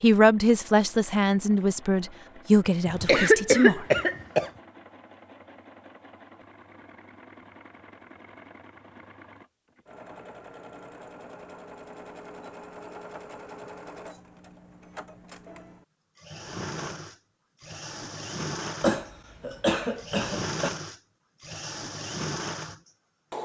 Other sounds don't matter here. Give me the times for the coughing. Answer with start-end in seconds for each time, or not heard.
2.9-4.5, 18.8-20.7.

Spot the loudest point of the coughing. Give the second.
3 s.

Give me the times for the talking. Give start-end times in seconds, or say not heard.
0.0-3.9.